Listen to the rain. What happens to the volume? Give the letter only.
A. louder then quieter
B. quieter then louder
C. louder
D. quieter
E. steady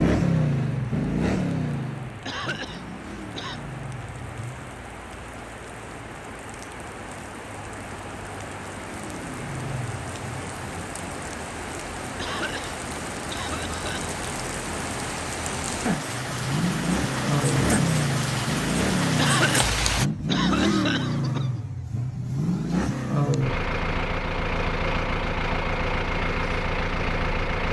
C.